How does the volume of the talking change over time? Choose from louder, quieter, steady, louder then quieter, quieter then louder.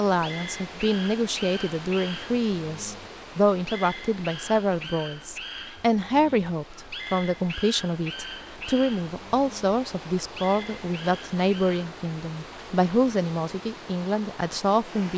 steady.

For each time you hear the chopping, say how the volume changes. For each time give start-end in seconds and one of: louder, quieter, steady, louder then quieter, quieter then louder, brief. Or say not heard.
not heard.